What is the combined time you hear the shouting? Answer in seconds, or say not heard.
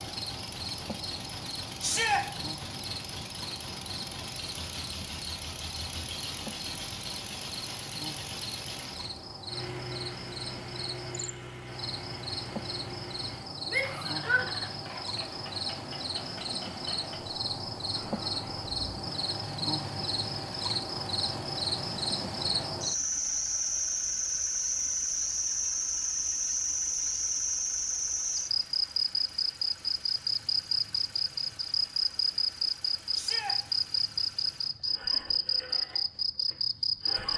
2 s.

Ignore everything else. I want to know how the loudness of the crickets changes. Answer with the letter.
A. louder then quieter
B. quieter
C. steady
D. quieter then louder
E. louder
E.